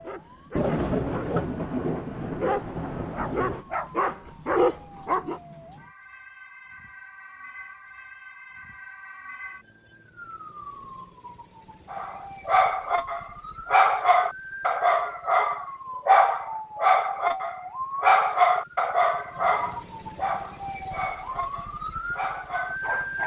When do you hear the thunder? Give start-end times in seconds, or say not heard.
0.6-3.6.